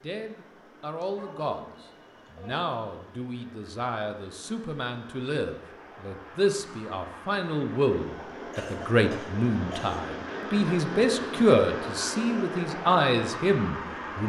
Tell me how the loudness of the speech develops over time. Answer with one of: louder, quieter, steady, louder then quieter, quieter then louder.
louder.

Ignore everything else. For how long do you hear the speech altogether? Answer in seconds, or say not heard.
14 s.